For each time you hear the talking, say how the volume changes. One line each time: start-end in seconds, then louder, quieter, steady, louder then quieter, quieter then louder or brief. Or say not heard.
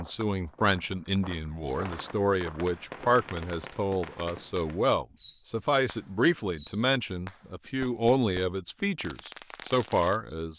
0.0-10.5 steady.